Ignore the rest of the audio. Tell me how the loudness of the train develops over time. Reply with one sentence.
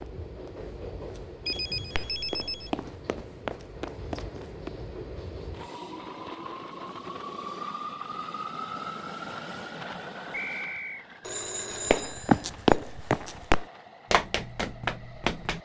The volume of the train goes up, then down.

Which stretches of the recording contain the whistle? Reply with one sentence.
The whistle can be heard from 10.3 to 11.2 s.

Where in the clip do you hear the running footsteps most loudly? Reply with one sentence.
The volume of the running footsteps peaks at 13 seconds.